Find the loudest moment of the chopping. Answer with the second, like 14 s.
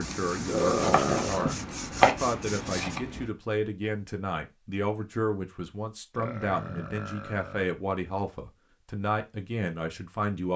2 s.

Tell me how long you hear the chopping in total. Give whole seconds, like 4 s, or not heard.
3 s.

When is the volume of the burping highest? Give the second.
1 s.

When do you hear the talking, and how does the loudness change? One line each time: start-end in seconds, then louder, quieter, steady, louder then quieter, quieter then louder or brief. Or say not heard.
0.0-10.5 steady.